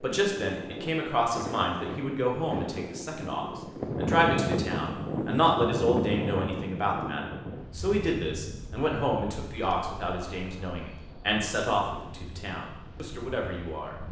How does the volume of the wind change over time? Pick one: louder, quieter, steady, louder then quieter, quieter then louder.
louder then quieter.